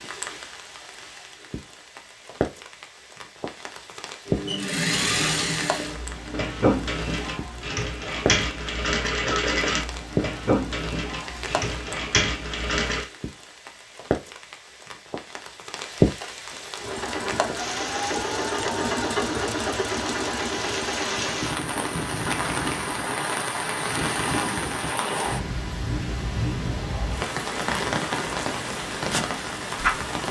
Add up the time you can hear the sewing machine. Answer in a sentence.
You can hear the sewing machine for 17 seconds altogether.